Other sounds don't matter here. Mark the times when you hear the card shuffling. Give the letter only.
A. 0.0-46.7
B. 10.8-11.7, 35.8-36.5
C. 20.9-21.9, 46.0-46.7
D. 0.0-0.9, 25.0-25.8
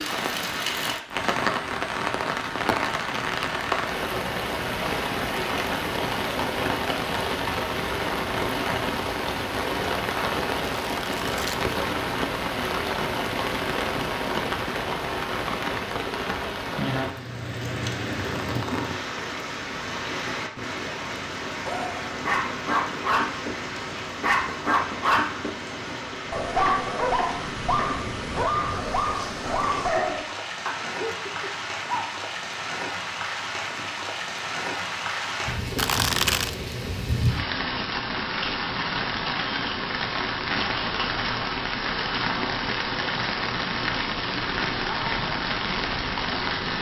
B.